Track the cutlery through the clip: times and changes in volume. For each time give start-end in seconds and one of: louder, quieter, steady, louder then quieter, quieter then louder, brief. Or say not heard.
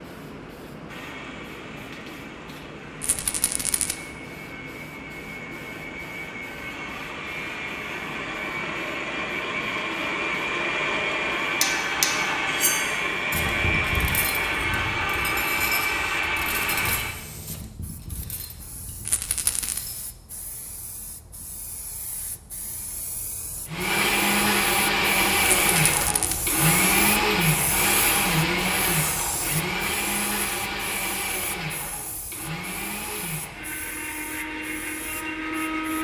11.6-20.1 quieter.